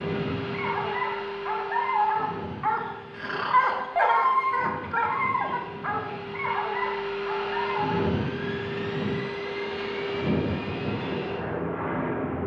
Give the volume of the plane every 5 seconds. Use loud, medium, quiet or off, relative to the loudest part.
medium, loud, loud.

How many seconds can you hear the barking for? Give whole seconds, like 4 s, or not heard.
8 s.